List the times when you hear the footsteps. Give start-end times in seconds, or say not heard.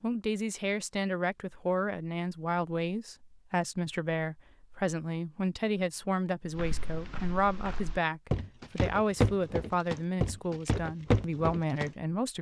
6.5-11.9.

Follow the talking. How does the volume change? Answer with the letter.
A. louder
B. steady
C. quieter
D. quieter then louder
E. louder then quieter
B.